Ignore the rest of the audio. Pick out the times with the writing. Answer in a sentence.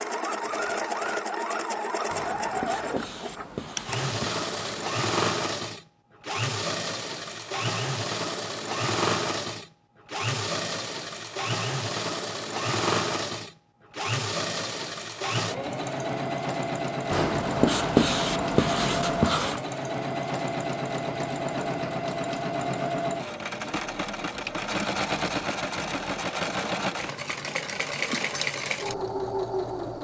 The writing can be heard from 2.1 to 4.9 s and from 17.1 to 19.6 s.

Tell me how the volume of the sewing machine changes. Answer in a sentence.
The volume of the sewing machine stays about the same.